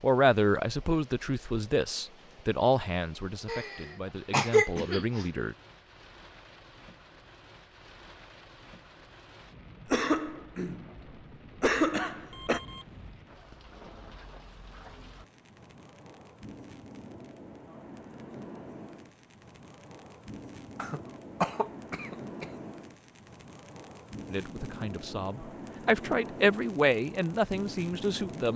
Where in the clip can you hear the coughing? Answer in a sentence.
You can hear the coughing from 3.5 to 5.2 s, from 9.8 to 10.9 s, from 11.6 to 12.6 s and from 20.8 to 22.4 s.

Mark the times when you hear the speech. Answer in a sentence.
You can hear the speech from 0.0 to 5.5 s and from 24.3 to 28.5 s.